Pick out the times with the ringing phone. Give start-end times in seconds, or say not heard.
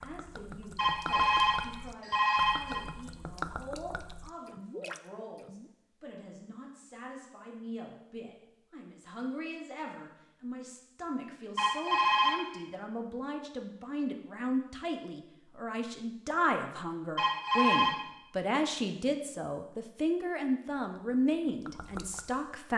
0.8-2.9, 11.6-12.4, 17.1-17.9.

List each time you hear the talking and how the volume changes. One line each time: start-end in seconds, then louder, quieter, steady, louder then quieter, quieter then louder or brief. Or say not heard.
0.0-22.7 louder.